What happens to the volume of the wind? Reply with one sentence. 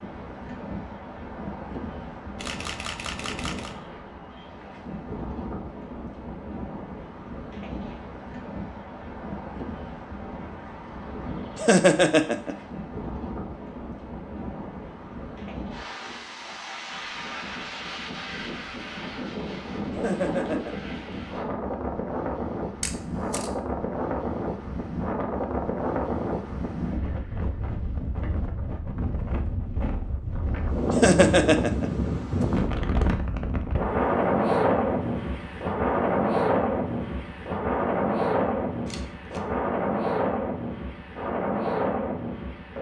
The loudness of the wind goes up.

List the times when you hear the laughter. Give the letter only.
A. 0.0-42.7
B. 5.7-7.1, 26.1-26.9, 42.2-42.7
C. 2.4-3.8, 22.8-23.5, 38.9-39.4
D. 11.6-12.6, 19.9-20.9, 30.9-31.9
D.